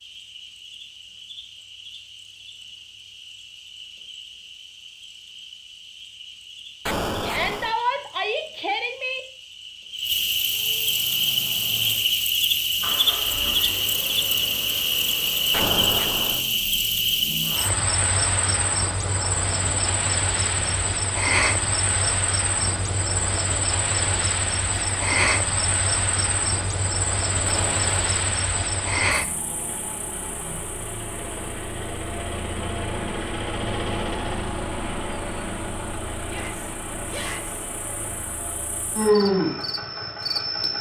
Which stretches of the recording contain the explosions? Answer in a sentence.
You can hear the explosions from 6.8 to 7.8 s, from 15.5 to 16.4 s and from 27.4 to 28.1 s.